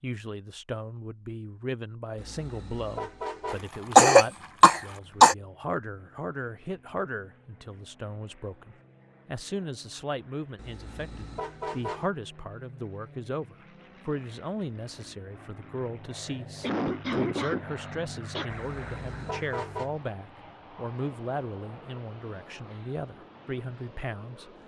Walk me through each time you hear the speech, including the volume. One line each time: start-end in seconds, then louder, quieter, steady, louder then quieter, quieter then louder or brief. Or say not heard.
0.0-24.6 steady.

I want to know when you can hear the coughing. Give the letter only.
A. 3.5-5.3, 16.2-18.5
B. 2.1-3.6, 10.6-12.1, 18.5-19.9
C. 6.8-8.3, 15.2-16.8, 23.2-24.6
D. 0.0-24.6
A.